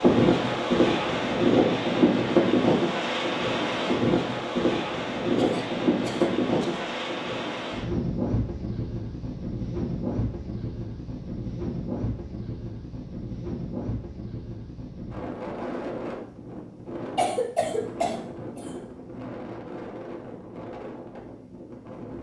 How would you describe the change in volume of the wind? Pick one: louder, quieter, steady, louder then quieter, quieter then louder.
quieter.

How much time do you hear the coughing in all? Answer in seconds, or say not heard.
3 s.